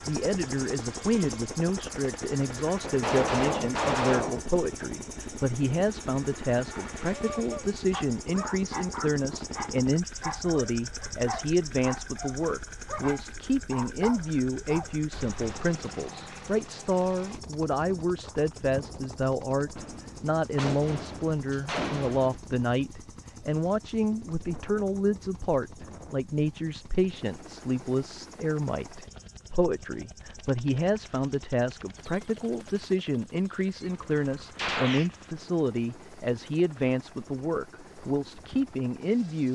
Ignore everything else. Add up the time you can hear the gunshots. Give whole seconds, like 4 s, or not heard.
5 s.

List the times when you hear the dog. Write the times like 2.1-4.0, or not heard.
6.7-15.7.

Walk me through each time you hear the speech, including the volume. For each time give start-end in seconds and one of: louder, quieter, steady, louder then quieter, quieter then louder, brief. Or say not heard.
0.1-39.5 steady.